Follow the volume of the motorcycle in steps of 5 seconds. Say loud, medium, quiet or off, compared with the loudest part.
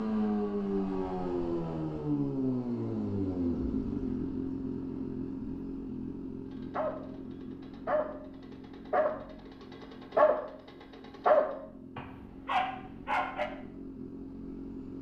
loud, medium, quiet.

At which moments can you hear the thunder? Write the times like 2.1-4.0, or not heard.
not heard.